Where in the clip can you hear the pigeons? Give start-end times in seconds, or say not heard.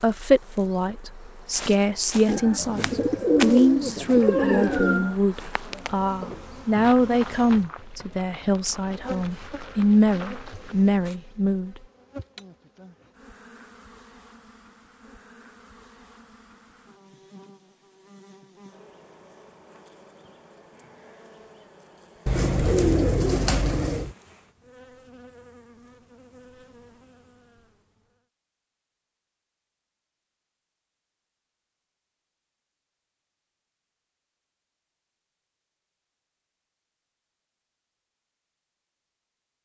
2.2-5.2, 22.2-24.1.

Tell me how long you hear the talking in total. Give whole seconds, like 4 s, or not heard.
12 s.